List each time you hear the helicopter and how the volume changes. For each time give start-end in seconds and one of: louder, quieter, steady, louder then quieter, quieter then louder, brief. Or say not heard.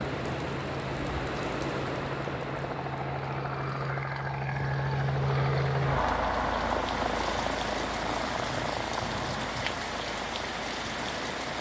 0.0-11.5 louder then quieter.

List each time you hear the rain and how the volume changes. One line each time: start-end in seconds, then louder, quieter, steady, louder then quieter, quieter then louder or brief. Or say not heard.
0.0-11.5 quieter then louder.